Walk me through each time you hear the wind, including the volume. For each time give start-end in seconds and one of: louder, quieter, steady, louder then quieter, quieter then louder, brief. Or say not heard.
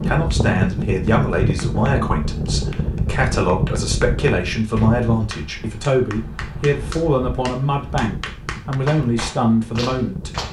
0.0-10.4 quieter.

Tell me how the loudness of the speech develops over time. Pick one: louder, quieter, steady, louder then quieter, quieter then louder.
steady.